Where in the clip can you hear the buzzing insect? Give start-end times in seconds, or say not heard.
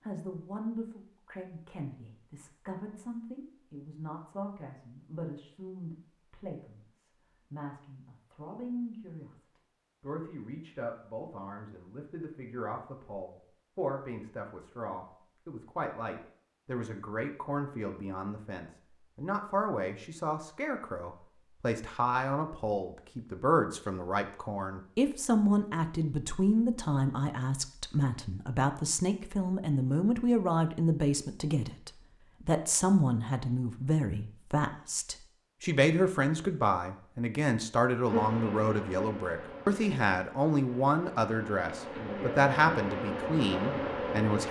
38.0-44.4.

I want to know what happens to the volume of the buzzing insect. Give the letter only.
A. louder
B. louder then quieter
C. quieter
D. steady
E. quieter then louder
E.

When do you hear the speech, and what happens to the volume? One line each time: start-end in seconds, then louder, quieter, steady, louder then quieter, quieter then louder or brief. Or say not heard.
0.0-44.4 louder.